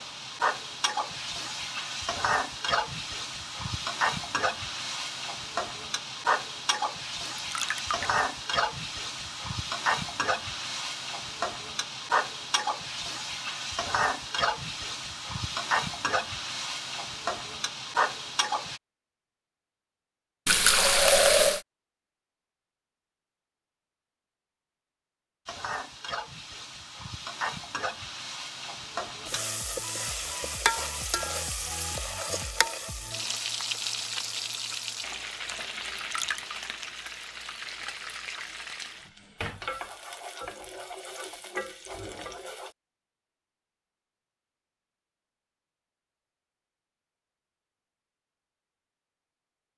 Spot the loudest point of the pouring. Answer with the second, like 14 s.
21 s.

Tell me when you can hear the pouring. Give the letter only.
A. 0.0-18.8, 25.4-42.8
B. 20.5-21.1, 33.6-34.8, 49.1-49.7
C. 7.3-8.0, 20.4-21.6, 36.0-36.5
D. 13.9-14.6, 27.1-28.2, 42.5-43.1
C.